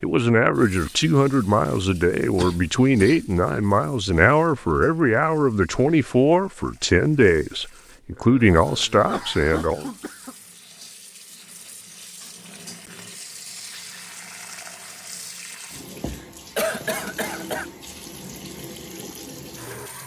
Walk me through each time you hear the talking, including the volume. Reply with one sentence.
The talking can be heard from 0.0 to 9.9 s, at a steady volume.